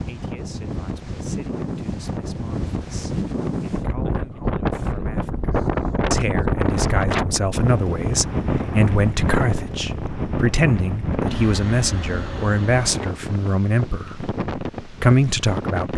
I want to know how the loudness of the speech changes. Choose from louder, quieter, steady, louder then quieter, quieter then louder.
louder.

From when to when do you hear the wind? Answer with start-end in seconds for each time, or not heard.
0.0-15.9.